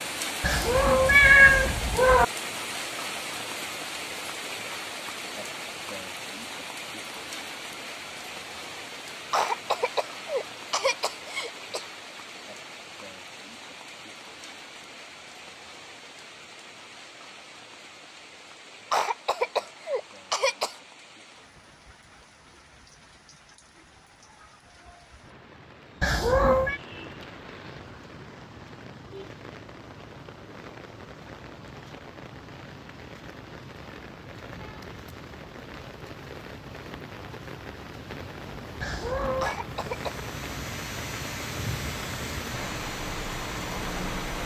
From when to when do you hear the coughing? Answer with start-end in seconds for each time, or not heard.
9.3-11.8, 18.9-20.8, 39.4-40.2.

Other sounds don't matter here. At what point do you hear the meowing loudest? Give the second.
1 s.